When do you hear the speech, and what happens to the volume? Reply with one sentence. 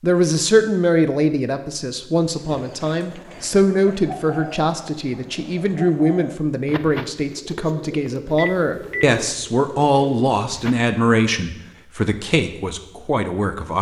You can hear the speech from 0.0 to 13.7 s, at a steady volume.